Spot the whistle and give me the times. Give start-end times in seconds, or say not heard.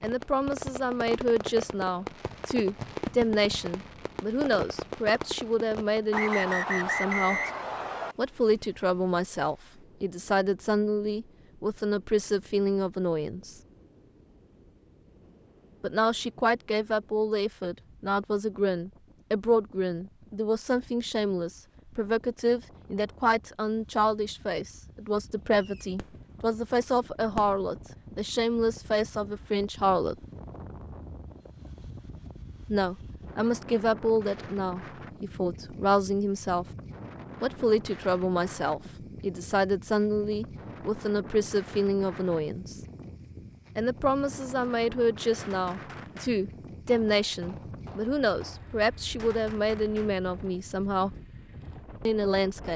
6.1-8.2.